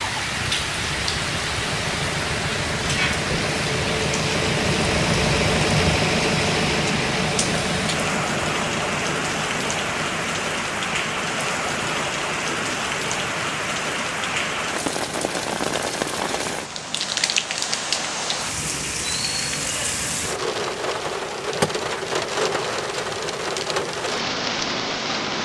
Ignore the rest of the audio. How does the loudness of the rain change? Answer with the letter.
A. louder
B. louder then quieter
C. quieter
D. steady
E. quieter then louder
D.